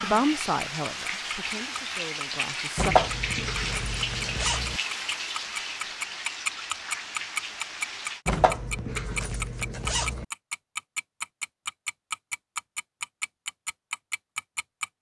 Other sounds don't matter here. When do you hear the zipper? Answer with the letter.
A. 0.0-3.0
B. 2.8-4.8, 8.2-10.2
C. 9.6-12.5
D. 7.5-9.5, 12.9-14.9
B.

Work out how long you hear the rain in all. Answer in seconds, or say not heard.
8 s.